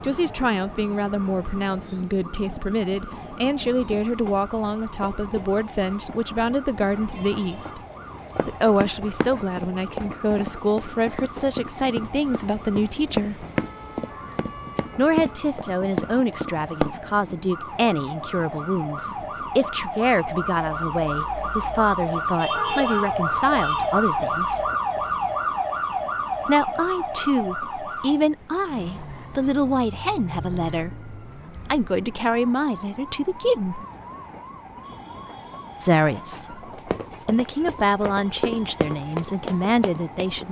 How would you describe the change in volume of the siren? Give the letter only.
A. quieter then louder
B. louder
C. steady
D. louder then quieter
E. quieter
D.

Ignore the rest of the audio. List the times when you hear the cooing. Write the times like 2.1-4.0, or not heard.
not heard.